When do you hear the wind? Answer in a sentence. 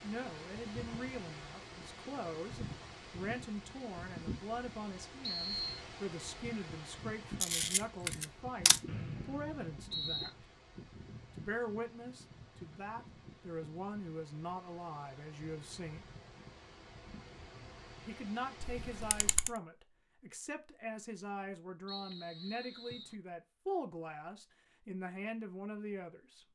You can hear the wind from 0.0 to 19.4 s.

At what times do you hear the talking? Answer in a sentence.
You can hear the talking from 0.0 to 10.4 s, from 11.3 to 16.1 s and from 18.1 to 26.4 s.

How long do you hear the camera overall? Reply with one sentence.
You can hear the camera for 2 seconds altogether.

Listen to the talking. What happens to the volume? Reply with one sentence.
The loudness of the talking stays about the same.